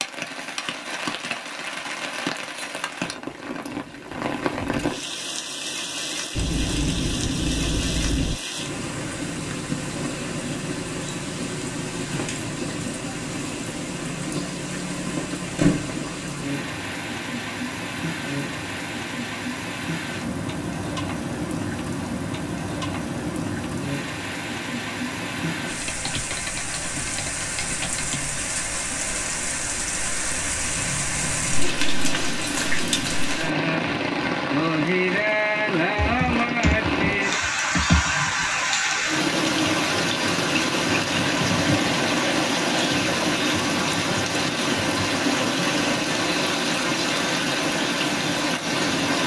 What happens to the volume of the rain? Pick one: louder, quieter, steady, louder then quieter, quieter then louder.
louder.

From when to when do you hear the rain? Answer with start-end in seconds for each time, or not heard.
0.0-49.2.